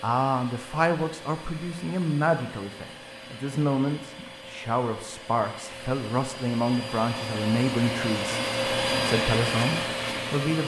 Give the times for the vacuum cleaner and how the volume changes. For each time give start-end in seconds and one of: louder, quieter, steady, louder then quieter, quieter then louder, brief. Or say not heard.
0.0-10.6 louder.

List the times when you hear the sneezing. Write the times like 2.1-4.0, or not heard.
not heard.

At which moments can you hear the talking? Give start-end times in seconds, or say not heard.
0.0-10.6.